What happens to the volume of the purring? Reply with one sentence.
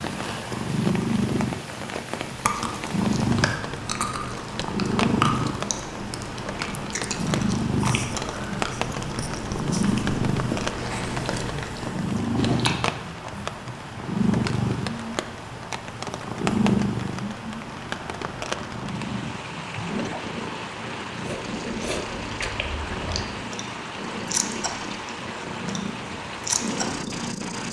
The volume of the purring goes down.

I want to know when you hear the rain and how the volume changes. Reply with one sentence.
The rain can be heard from 0.0 to 27.6 s, at a steady volume.